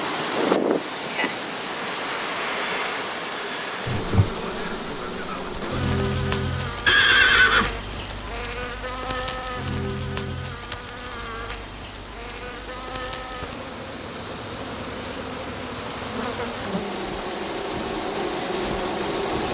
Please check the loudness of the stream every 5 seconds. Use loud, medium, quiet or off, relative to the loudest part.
loud, medium, medium, loud.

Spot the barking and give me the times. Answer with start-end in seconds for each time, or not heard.
not heard.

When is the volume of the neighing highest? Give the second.
7 s.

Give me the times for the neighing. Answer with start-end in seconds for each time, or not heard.
6.8-7.8, 13.2-13.6.